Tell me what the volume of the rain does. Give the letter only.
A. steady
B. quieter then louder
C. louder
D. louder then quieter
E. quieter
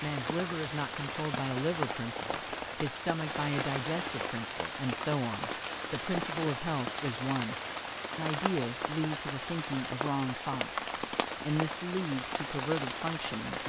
A.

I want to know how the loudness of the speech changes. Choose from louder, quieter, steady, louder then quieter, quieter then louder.
steady.